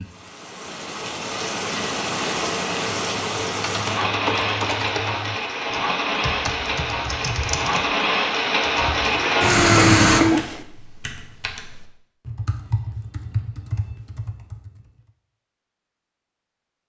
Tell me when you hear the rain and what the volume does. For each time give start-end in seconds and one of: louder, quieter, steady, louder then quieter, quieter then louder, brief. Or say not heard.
0.0-10.2 louder.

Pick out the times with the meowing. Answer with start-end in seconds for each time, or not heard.
9.1-10.7.